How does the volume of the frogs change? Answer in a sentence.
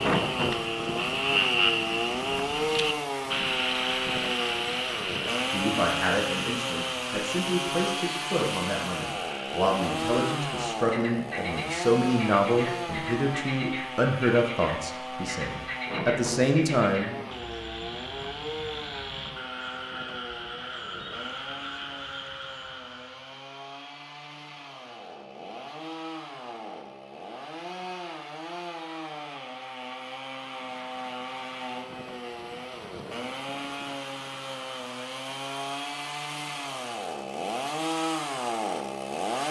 The loudness of the frogs goes down.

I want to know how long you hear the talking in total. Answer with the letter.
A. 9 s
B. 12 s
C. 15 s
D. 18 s
B.